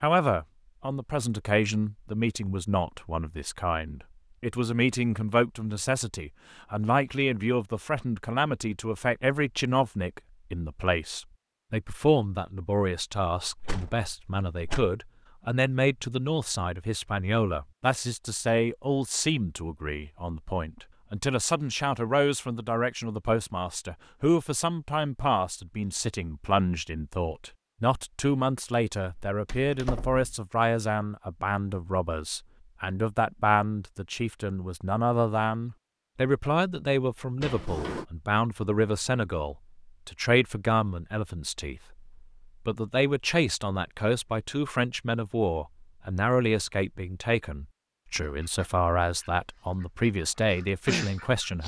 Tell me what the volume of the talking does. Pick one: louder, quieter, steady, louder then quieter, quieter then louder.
steady.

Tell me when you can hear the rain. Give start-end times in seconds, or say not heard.
not heard.